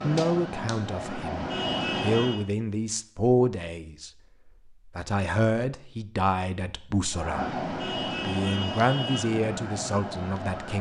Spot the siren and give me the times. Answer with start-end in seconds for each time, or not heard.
0.0-2.5, 7.1-10.7.